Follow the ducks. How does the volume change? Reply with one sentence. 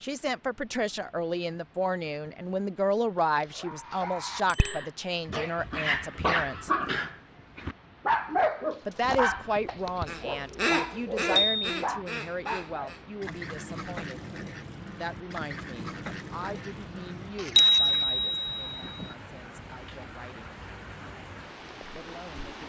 The volume of the ducks goes down.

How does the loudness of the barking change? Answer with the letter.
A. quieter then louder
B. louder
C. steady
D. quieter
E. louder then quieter
E.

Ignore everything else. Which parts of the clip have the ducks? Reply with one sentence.
You can hear the ducks from 9.8 to 18.1 s.